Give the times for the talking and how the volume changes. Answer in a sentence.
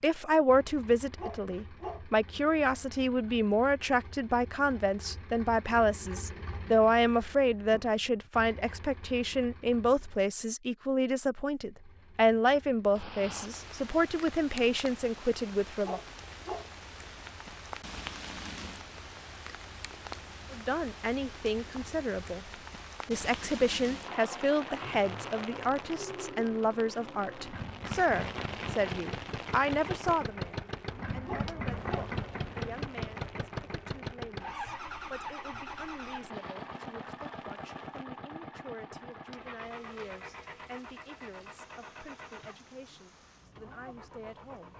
You can hear the talking from 0.0 to 16.0 s, at a steady volume; briefly from 20.5 to 22.4 s; and from 23.1 to 44.7 s, getting quieter.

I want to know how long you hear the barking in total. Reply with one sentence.
The barking can be heard for 3 seconds in total.